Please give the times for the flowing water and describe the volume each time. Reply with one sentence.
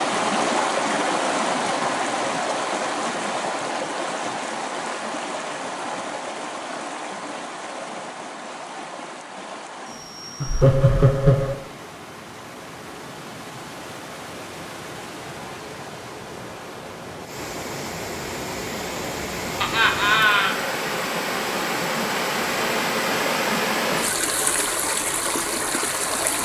You can hear the flowing water from 0.0 to 26.4 s, getting quieter then louder.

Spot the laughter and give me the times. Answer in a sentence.
You can hear the laughter from 10.4 to 11.6 s and from 19.6 to 20.6 s.